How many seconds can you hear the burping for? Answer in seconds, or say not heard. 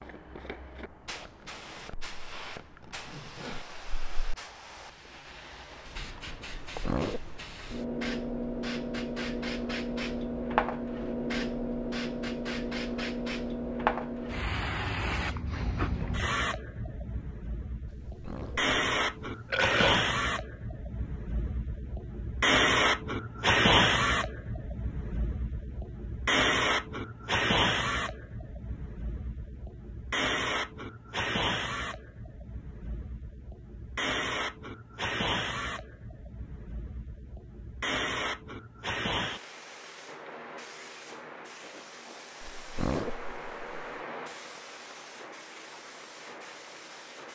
4 s.